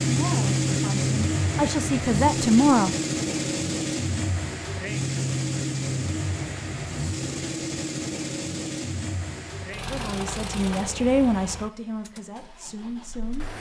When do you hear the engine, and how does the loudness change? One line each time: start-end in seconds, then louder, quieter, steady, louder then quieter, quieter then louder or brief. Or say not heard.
0.0-13.5 quieter.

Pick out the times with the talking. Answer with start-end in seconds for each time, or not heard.
0.0-3.0, 9.8-13.4.